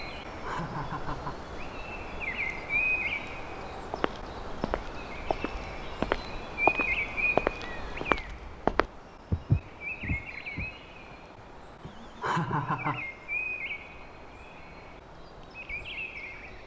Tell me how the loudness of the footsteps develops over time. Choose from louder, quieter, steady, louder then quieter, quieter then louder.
louder.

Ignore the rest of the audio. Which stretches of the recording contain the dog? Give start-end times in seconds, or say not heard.
not heard.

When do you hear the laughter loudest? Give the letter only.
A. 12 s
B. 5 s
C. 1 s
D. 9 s
A.